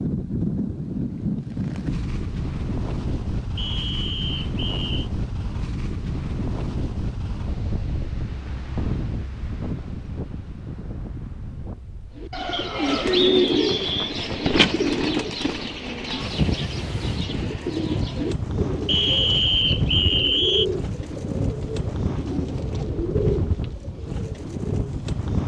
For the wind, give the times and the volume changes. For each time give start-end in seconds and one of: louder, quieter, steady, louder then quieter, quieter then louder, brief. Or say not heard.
0.0-25.4 quieter then louder.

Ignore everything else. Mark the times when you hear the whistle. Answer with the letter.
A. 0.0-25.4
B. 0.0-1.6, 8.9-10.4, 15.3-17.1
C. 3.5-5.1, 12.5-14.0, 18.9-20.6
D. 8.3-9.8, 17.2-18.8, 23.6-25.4
C.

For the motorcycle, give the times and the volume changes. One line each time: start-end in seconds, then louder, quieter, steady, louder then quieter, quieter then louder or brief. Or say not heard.
not heard.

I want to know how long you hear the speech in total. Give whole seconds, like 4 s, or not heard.
not heard.